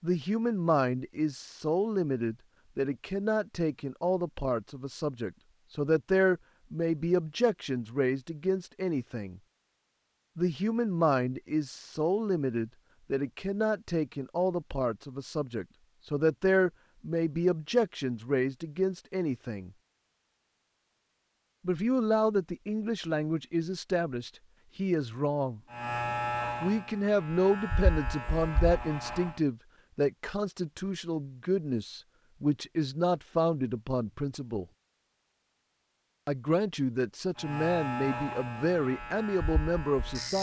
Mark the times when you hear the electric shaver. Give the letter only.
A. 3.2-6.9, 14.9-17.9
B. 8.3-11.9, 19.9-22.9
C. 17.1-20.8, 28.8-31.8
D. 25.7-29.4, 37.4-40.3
D.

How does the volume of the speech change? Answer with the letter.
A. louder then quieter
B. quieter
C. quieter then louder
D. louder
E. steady
E.